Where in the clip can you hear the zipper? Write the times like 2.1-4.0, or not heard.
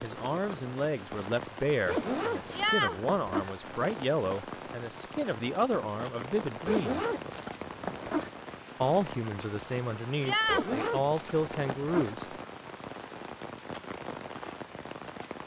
1.9-3.5, 6.7-8.3, 10.4-12.2.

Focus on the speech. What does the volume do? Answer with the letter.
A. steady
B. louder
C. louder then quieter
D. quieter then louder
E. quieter
A.